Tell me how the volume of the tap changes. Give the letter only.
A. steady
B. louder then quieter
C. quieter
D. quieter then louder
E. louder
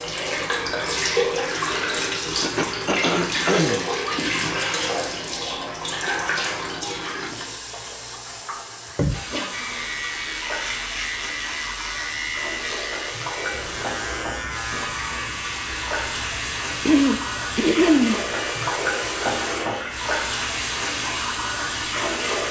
D.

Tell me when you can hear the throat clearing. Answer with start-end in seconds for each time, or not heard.
2.4-3.9, 8.9-9.7, 16.9-18.2.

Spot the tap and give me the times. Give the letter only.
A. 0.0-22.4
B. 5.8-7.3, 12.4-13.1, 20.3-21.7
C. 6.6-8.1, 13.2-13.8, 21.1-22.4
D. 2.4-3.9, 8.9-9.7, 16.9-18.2
A.